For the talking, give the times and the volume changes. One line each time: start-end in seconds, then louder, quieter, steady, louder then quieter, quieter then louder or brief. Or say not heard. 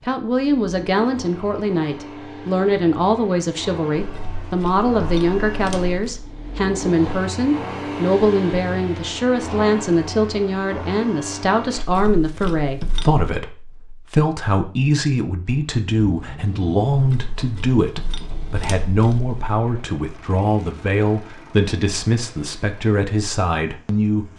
0.0-24.3 steady.